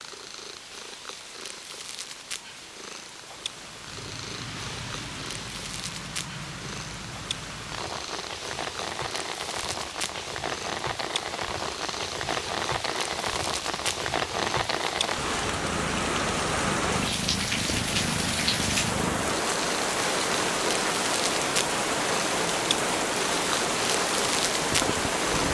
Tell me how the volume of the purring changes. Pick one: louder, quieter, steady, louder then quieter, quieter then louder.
louder.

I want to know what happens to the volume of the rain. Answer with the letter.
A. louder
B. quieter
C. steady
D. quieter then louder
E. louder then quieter
A.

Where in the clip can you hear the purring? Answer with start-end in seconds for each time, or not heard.
0.0-25.4.